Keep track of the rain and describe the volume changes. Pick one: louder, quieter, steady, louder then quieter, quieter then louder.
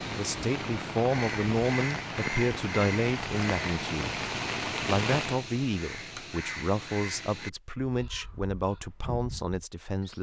louder.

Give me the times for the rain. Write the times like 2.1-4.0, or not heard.
0.0-5.5.